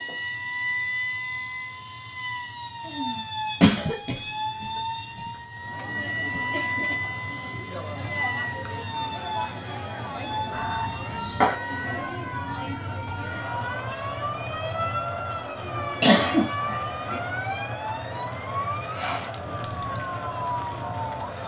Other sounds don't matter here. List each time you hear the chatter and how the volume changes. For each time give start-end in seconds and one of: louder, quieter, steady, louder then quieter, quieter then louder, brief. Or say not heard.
5.5-21.4 steady.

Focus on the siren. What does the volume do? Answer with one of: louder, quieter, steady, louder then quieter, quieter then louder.
steady.